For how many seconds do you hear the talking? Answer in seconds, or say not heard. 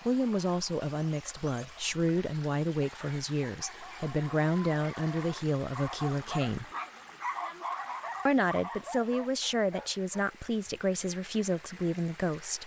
11 s.